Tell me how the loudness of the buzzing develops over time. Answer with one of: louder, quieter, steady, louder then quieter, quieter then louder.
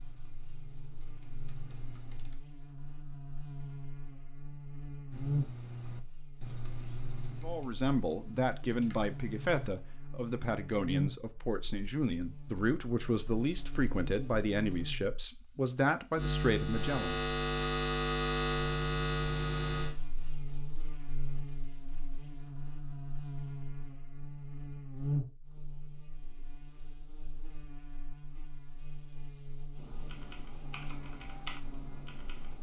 louder then quieter.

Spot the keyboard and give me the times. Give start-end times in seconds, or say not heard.
0.0-2.4, 5.1-9.7, 29.8-32.5.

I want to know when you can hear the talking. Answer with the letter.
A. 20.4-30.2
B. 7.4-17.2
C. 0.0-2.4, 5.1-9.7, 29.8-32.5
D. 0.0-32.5
B.